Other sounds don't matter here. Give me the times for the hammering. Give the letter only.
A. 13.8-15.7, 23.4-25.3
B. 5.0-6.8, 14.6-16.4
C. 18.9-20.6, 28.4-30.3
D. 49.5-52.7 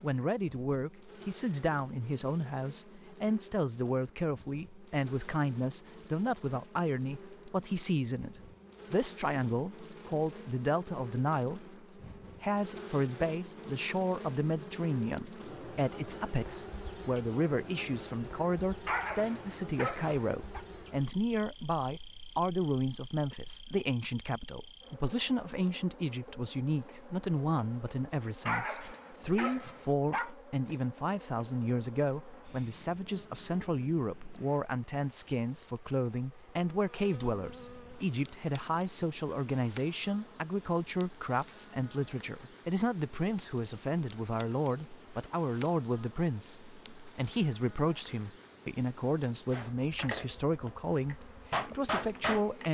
D.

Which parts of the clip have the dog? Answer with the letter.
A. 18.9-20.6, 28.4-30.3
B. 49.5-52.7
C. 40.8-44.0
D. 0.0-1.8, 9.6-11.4
A.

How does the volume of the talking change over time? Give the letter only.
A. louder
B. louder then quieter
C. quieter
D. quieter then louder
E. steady
E.